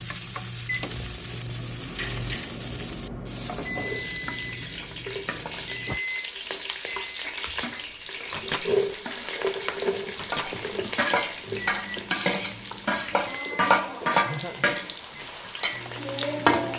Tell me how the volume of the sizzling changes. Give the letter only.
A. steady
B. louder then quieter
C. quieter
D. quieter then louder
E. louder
E.